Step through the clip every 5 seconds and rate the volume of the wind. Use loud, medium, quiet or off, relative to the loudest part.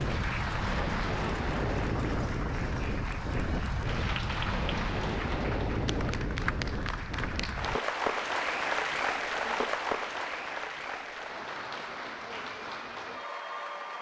loud, loud, off.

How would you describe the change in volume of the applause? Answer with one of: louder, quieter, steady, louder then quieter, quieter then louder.
louder then quieter.